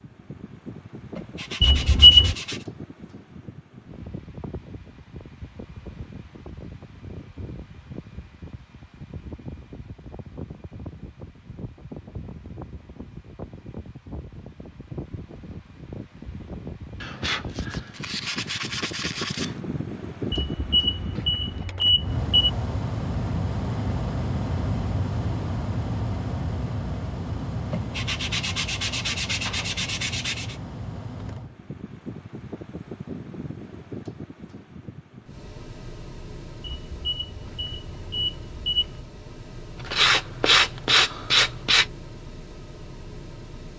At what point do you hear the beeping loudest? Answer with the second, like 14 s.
2 s.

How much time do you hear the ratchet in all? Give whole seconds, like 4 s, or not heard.
not heard.